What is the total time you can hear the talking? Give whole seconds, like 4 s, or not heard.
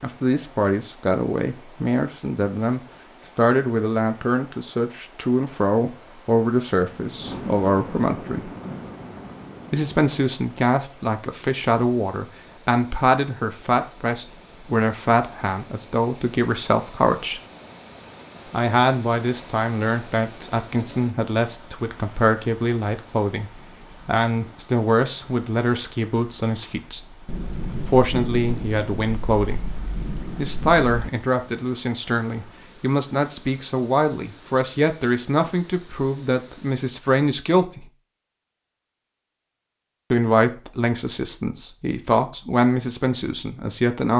39 s.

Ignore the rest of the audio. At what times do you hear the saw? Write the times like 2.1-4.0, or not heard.
not heard.